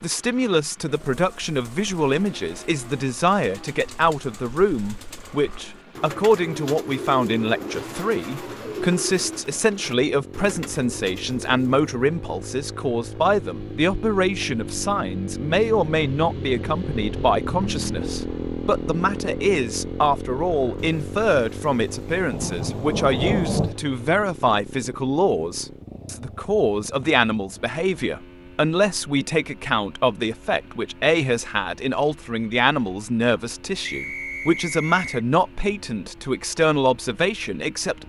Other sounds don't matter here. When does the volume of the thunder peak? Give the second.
23 s.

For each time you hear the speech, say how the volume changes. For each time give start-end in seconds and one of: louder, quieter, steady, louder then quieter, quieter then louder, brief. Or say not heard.
0.0-38.0 steady.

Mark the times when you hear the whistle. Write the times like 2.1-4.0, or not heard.
33.8-35.2.